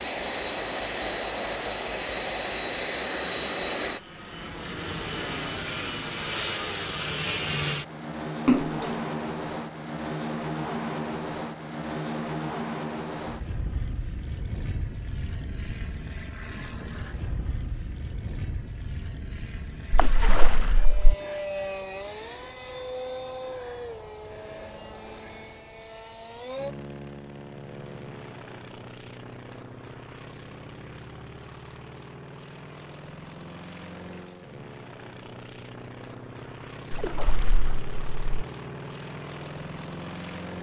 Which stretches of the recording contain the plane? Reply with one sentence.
The plane can be heard from 0.0 to 40.5 s.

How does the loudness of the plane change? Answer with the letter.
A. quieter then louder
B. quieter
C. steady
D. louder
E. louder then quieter
B.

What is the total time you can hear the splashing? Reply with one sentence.
You can hear the splashing for 3 seconds altogether.